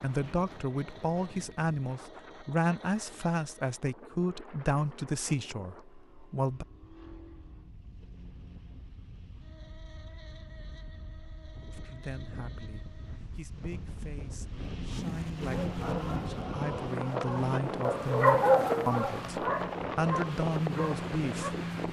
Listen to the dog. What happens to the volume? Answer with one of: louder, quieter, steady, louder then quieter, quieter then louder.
louder then quieter.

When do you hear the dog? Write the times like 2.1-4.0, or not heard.
15.5-21.6.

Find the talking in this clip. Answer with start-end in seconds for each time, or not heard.
0.0-6.7, 11.7-21.6.